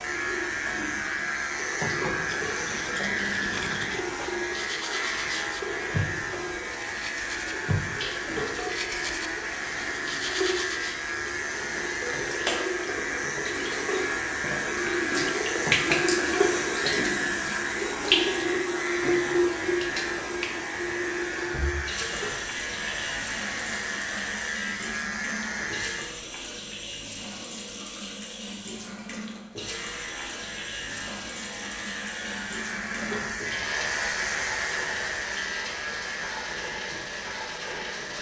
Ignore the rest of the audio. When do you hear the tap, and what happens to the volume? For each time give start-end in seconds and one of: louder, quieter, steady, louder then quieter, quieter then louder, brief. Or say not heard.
0.0-38.1 louder then quieter.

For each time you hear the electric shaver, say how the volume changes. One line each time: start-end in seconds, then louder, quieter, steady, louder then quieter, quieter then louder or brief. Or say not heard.
0.0-26.1 steady
29.5-38.1 louder then quieter.